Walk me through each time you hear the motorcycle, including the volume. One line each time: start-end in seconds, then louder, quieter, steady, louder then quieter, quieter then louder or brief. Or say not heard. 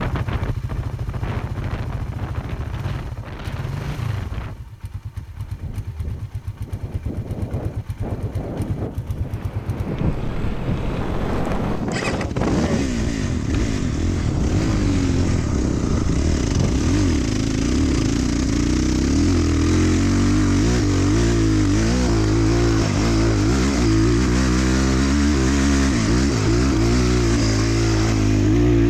0.0-28.8 louder.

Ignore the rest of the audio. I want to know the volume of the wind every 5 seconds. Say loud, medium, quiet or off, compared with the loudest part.
medium, medium, loud, loud, off, off.